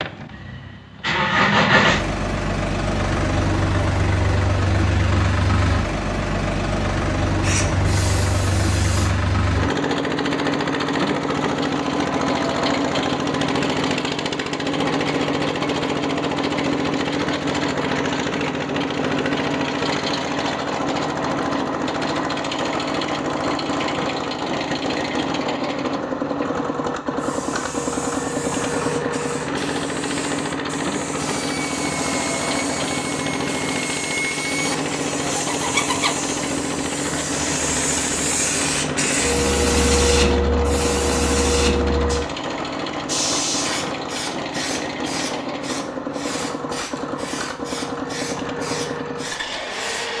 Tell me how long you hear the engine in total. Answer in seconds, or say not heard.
50 s.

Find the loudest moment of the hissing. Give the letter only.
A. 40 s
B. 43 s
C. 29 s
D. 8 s
A.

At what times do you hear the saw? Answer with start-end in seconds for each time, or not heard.
31.1-36.1.